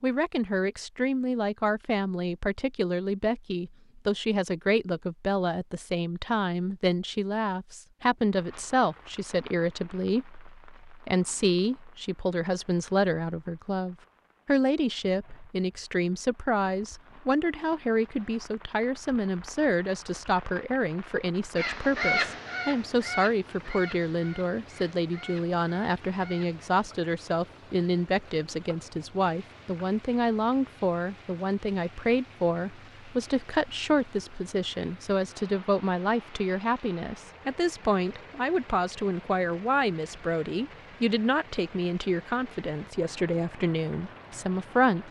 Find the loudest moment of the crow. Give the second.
22 s.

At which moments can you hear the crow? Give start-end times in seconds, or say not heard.
21.6-26.6.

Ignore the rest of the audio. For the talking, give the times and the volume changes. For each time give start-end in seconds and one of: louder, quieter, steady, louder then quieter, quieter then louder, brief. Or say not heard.
0.0-45.0 steady.